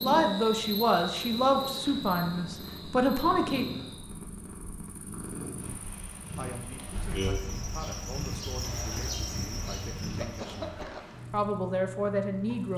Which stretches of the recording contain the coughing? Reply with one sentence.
The coughing can be heard from 10.1 to 11.2 s.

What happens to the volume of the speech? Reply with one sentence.
The volume of the speech goes down, then up.